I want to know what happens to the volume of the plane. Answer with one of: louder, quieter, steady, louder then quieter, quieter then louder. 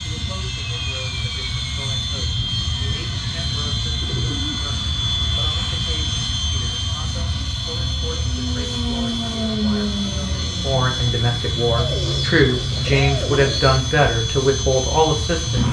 steady.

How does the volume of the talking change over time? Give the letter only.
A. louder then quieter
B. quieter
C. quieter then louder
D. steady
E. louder
E.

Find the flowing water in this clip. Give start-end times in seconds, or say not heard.
not heard.